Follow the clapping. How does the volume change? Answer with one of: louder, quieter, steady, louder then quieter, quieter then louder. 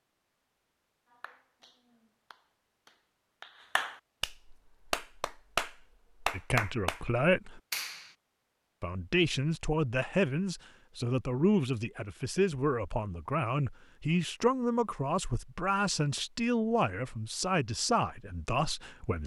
louder.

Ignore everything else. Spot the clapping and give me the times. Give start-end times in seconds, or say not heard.
1.1-8.1.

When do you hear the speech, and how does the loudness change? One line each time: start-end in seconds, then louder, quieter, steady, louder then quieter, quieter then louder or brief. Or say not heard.
6.3-7.6 brief
8.8-19.2 steady.